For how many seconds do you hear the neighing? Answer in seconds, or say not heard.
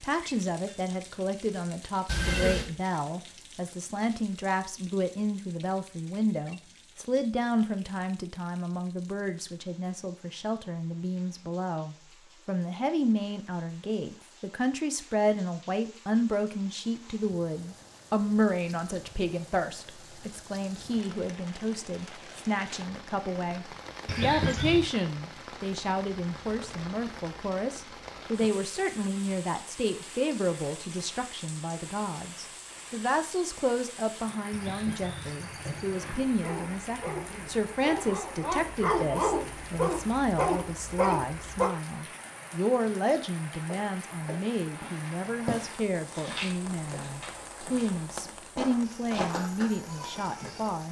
3 s.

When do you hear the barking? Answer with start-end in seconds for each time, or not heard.
36.2-41.7.